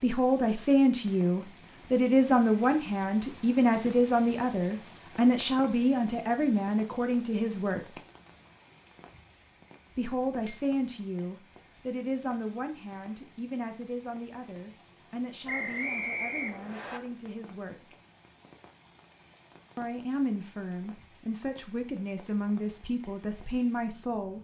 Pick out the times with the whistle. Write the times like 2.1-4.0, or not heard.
15.4-17.0.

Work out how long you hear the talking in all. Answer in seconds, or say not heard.
21 s.